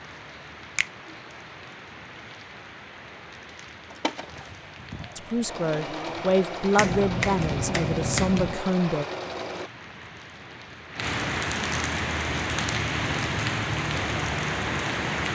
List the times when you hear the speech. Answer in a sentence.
You can hear the speech from 5.2 to 9.1 s.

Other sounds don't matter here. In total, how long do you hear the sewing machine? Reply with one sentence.
The sewing machine can be heard for 6 seconds in total.